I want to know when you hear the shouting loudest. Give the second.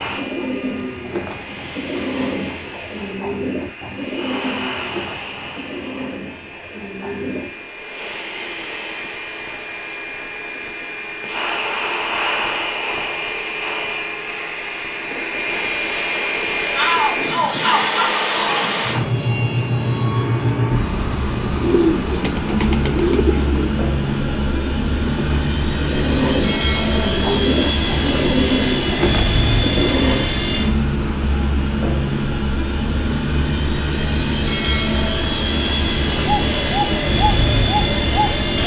17 s.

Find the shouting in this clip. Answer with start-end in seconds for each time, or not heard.
16.8-18.6.